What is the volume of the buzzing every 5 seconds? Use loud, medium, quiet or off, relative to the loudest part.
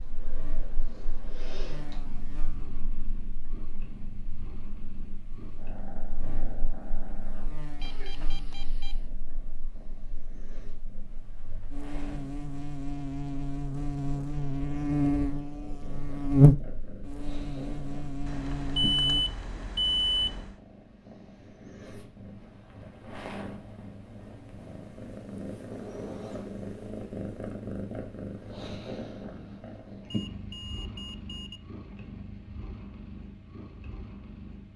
quiet, quiet, medium, loud, off, off, off.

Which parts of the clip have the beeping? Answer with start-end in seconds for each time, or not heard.
7.8-9.1, 18.2-20.6, 30.1-31.6.